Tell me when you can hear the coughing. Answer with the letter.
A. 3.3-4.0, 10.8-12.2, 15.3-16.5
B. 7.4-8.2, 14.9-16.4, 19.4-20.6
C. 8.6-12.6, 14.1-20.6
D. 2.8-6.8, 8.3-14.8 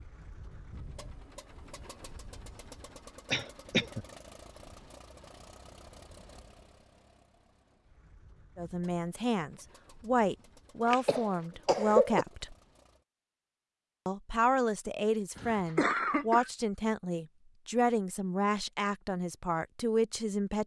A.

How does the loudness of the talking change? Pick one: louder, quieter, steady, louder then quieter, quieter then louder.
steady.